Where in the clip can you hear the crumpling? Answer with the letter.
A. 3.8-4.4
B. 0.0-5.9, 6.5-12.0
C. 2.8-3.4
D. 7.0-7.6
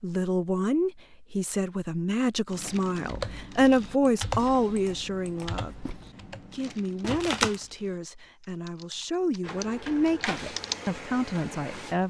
D.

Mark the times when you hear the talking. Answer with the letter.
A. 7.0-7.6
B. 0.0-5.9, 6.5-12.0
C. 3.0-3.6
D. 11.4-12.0
B.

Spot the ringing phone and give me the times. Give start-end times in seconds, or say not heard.
not heard.